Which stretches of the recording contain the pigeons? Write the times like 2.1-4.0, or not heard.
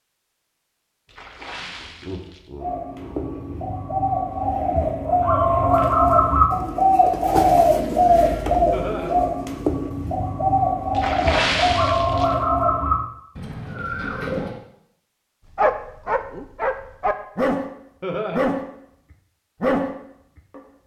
2.6-14.6.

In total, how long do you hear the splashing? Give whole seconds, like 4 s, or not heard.
3 s.